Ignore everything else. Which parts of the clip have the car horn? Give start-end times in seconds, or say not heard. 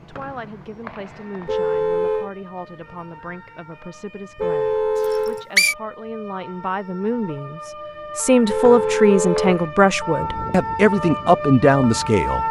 1.4-2.3, 4.3-5.5, 8.4-9.6.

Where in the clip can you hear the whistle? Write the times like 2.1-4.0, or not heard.
0.1-1.6, 5.0-5.8, 8.7-9.6.